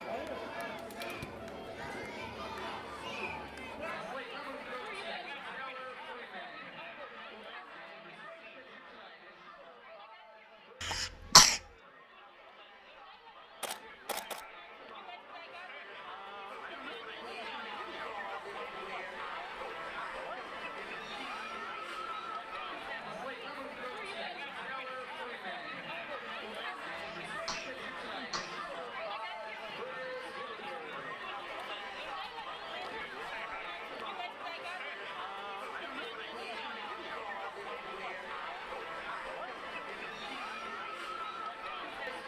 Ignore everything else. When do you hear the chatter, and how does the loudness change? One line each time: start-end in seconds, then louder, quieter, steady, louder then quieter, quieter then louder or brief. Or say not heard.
0.0-42.2 quieter then louder.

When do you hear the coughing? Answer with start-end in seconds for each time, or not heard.
10.8-11.6, 26.9-28.6.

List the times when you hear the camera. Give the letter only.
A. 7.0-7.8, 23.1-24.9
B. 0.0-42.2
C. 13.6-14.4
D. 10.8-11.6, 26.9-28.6
C.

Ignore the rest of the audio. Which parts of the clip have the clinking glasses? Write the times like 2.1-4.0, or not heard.
not heard.